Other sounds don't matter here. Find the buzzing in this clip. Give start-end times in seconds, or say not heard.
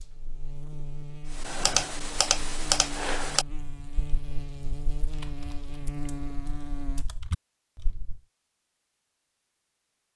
0.0-7.0.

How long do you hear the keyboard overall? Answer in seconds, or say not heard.
7 s.